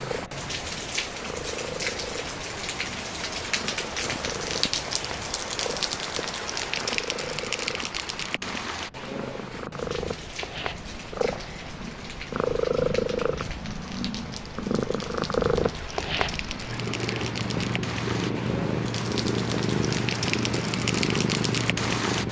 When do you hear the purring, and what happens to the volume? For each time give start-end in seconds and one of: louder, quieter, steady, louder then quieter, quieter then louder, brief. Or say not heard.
0.0-22.2 louder.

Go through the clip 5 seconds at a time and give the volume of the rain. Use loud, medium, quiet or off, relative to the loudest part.
loud, loud, medium, medium, loud.